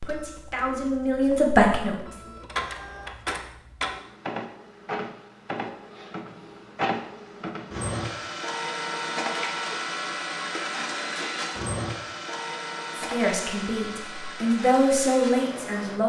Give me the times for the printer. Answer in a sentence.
The printer can be heard from 0.0 to 16.0 s.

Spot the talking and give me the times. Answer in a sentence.
You can hear the talking from 0.1 to 2.3 s and from 12.9 to 16.0 s.